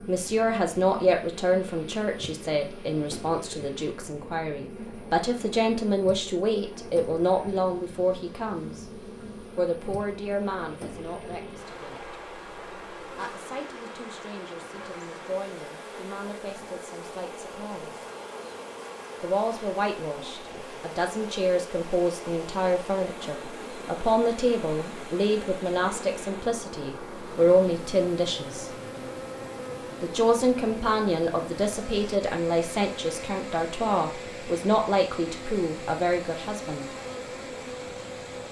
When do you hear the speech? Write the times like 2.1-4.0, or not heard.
0.1-8.8, 9.6-12.2, 13.2-18.0, 19.2-28.7, 30.0-36.9.